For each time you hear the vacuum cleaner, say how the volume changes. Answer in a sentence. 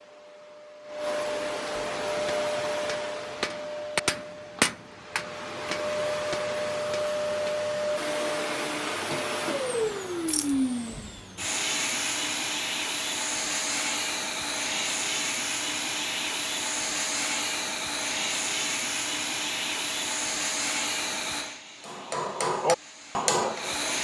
The vacuum cleaner can be heard from 0.0 to 23.9 s, at a steady volume.